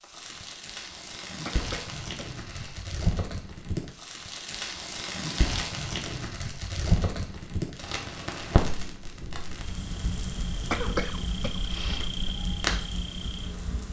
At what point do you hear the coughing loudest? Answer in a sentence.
The volume of the coughing peaks at 11 seconds.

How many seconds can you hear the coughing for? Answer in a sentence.
You can hear the coughing for 3 seconds altogether.